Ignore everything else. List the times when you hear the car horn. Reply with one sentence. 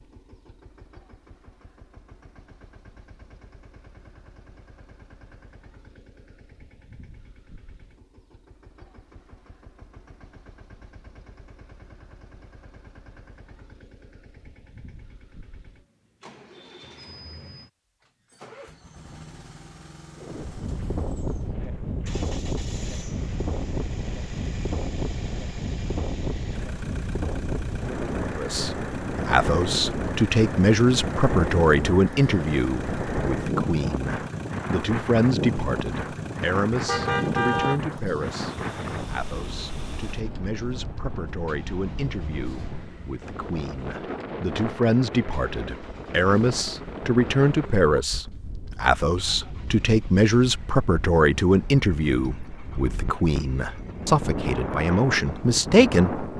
You can hear the car horn from 36.9 to 37.8 s.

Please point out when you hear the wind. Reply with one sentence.
The wind can be heard from 20.1 to 56.3 s.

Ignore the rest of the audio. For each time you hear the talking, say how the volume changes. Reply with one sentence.
You can hear the talking from 28.4 to 56.2 s, getting quieter then louder.